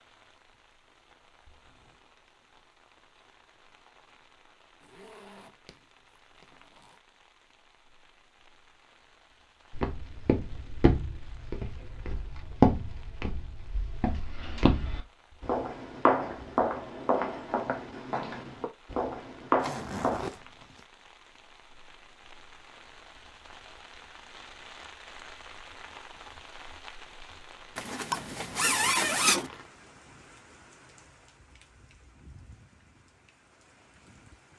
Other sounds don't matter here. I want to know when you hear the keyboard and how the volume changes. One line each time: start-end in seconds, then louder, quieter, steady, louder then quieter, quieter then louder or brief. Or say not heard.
not heard.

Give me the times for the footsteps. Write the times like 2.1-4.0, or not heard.
9.7-20.2.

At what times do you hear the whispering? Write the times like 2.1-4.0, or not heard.
not heard.